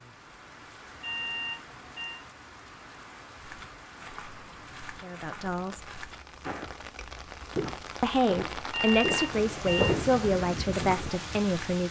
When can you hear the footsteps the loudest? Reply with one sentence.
The loudest moment of the footsteps is at 10 seconds.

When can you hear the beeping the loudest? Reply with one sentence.
The volume of the beeping peaks at 9 seconds.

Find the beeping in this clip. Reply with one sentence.
The beeping can be heard from 1.0 to 2.2 s and from 8.7 to 9.9 s.